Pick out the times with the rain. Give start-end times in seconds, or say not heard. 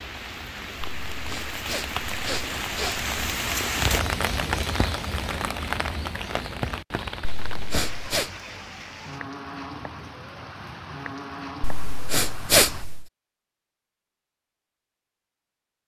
0.0-12.8.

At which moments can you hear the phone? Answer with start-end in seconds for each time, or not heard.
not heard.